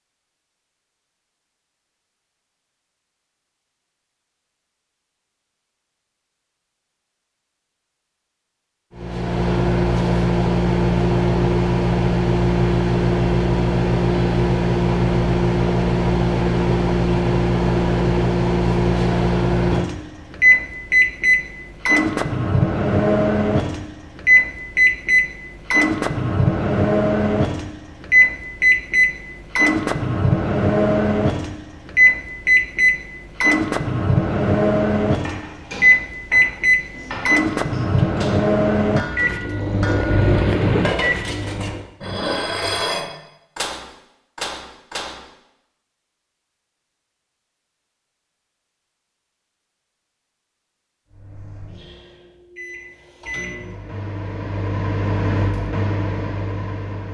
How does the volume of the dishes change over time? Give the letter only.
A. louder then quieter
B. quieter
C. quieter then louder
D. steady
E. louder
E.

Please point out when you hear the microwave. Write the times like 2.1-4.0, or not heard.
8.9-41.9, 51.1-57.0.